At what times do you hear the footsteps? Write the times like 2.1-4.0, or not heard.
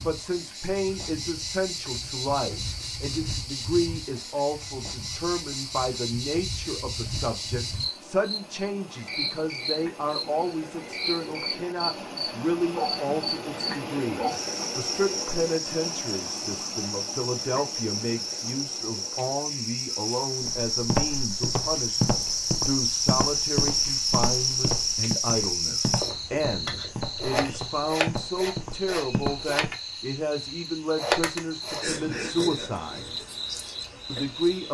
20.4-29.8.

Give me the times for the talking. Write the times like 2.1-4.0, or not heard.
0.0-33.1, 34.1-34.6.